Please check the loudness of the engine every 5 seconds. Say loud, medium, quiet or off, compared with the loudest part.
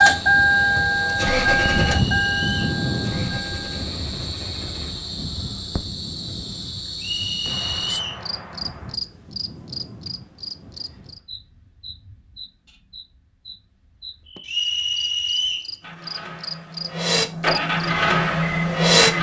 loud, off, off, loud.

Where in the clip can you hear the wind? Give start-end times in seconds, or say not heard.
0.0-11.2.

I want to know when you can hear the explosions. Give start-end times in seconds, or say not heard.
7.5-8.9.